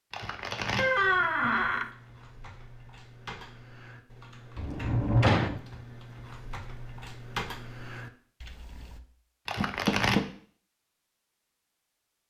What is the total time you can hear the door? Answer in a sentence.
The door can be heard for 3 seconds in total.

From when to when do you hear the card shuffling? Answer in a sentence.
The card shuffling can be heard from 0.1 to 1.1 s and from 9.4 to 10.2 s.